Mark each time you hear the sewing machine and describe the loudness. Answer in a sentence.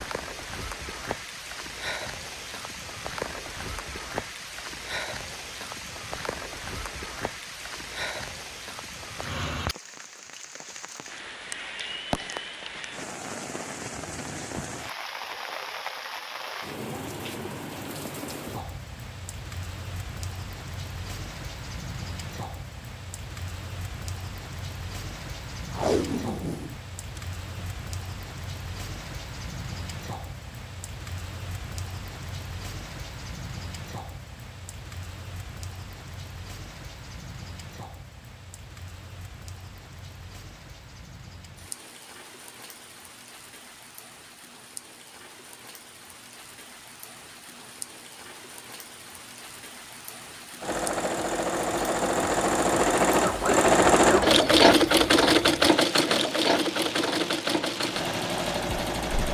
The sewing machine can be heard from 50.6 to 59.2 s, getting louder then quieter.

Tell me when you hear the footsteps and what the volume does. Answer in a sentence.
You can't hear the footsteps here.